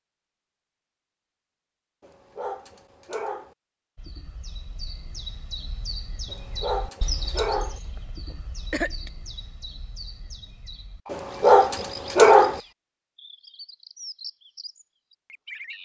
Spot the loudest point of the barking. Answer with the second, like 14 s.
12 s.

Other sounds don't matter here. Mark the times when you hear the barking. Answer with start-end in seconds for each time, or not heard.
2.0-3.5, 6.2-7.8, 11.1-12.6.